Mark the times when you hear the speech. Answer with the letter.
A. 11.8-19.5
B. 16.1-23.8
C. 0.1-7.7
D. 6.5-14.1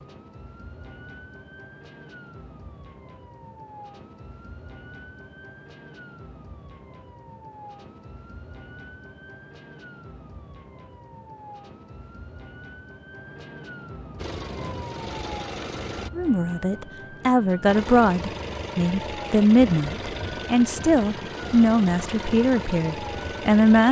B.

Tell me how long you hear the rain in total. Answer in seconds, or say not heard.
not heard.